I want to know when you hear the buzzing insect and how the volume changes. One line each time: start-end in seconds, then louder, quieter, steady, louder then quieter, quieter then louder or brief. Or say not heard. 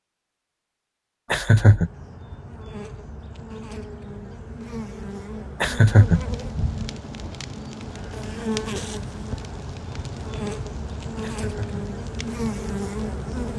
1.7-13.5 louder.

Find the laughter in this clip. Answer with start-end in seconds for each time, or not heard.
1.3-1.9, 5.6-6.3, 11.2-11.8.